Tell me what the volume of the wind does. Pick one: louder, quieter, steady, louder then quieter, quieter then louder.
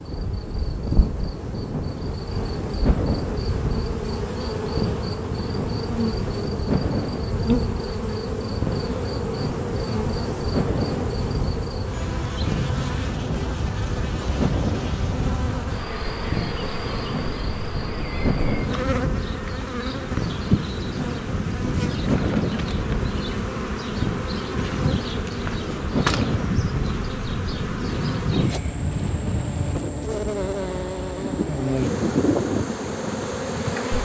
steady.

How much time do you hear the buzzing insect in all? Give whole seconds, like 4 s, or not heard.
34 s.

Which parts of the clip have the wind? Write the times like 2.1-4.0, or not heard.
0.0-33.9.